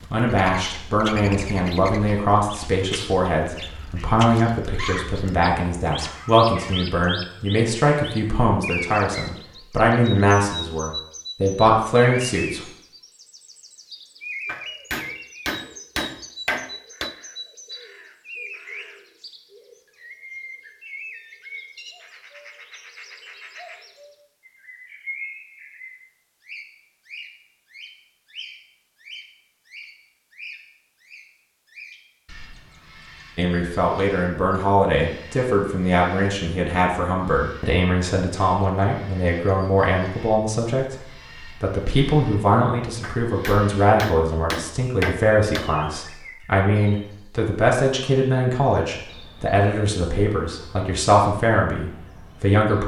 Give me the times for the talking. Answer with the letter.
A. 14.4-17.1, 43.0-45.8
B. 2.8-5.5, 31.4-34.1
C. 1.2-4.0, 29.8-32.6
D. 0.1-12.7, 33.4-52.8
D.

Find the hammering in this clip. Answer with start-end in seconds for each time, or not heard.
14.4-17.1, 43.0-45.8.